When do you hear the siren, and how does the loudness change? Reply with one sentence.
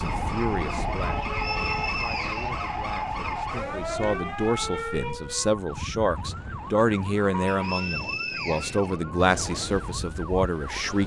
The siren can be heard from 0.0 to 10.9 s, getting quieter.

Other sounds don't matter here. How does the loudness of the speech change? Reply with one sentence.
The loudness of the speech goes up.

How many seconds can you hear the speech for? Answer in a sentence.
You can hear the speech for 11 seconds altogether.